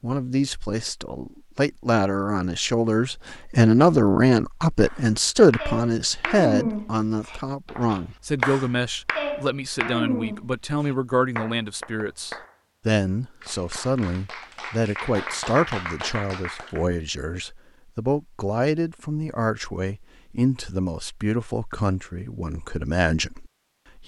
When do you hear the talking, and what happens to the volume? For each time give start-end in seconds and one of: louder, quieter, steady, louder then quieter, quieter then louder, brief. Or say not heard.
0.0-24.0 quieter.